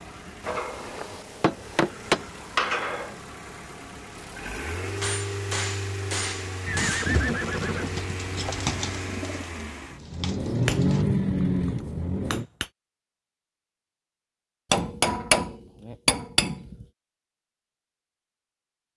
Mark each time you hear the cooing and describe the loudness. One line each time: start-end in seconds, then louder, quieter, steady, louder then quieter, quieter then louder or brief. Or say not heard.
7.0-11.1 louder then quieter.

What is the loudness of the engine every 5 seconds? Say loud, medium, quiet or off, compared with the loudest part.
quiet, medium, loud, off.